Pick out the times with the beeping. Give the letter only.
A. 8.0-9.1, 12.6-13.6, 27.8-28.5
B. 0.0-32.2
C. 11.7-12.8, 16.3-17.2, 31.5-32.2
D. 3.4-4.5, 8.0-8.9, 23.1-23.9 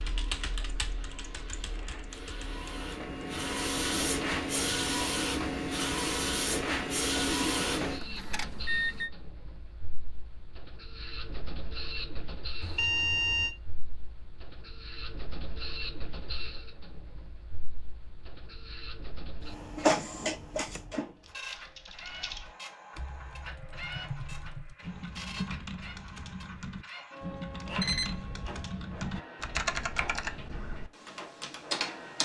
A.